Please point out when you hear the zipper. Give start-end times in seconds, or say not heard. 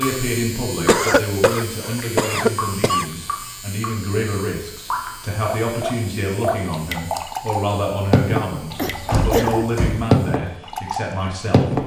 not heard.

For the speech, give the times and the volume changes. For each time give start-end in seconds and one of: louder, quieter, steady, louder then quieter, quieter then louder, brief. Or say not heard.
0.0-11.8 steady.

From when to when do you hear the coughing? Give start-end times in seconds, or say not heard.
0.8-3.0, 8.5-9.7.